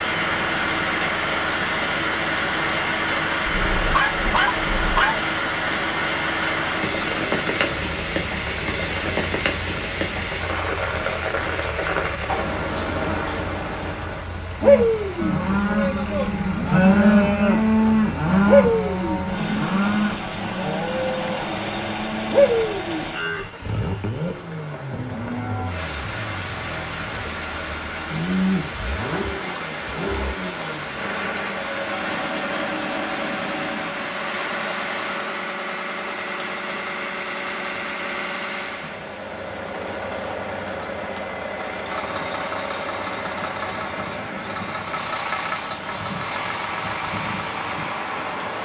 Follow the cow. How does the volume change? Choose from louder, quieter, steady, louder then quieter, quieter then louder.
quieter.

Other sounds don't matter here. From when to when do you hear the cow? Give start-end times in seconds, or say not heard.
14.6-25.7.